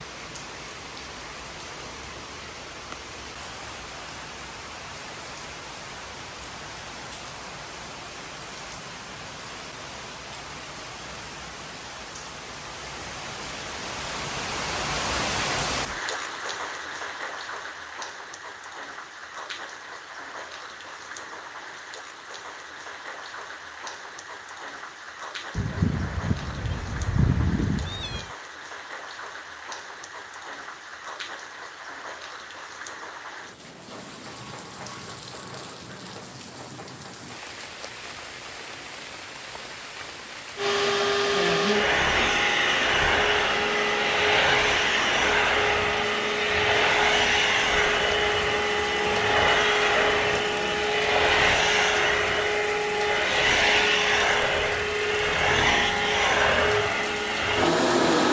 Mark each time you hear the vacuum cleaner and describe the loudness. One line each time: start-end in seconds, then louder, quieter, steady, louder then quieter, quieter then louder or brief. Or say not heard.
40.5-58.2 steady.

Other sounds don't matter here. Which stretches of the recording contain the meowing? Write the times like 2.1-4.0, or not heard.
25.6-28.3.